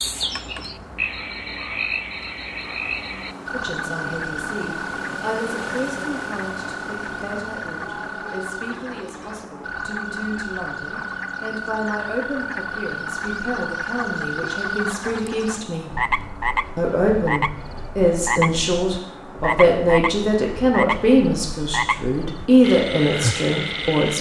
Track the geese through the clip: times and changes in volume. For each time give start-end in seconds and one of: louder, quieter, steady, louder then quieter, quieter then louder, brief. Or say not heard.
not heard.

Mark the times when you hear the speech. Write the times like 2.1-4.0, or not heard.
3.5-15.9, 16.8-24.1.